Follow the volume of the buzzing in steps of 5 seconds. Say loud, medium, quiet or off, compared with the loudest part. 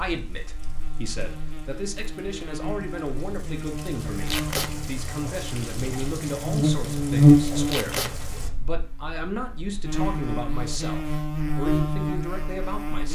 quiet, loud, medium.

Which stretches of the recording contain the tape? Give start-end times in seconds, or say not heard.
4.2-4.7, 7.7-8.1.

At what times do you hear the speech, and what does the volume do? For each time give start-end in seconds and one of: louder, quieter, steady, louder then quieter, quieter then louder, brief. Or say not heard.
0.0-13.1 steady.